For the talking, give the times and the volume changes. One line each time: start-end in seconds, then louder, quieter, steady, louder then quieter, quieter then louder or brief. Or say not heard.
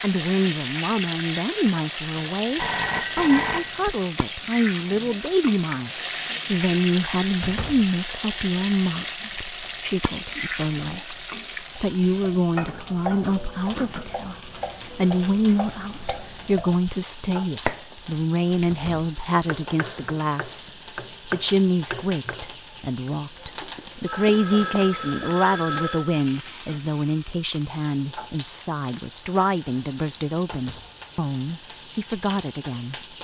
0.0-33.0 steady.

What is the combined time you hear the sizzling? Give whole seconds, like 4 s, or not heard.
33 s.